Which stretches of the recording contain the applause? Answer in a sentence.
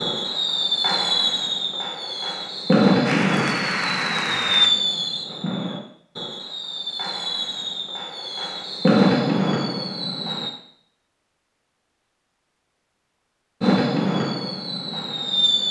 You can hear the applause from 3.0 to 4.7 s.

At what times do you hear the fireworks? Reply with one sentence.
You can hear the fireworks from 0.0 to 10.5 s and from 13.6 to 15.6 s.